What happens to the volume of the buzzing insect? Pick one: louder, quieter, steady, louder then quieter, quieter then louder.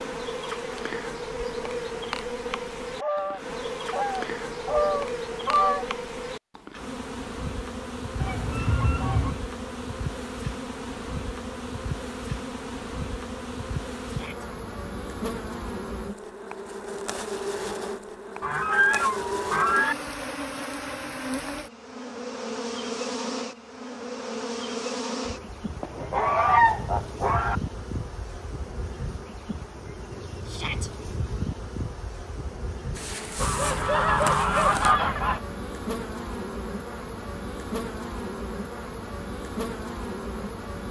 steady.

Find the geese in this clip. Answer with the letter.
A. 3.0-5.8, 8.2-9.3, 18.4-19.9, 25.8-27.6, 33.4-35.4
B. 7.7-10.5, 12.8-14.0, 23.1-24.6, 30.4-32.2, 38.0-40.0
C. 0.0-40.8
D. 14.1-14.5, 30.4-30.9
A.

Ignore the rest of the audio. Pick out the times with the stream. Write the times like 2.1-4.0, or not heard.
not heard.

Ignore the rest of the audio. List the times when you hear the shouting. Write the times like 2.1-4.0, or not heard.
14.1-14.5, 30.4-30.9.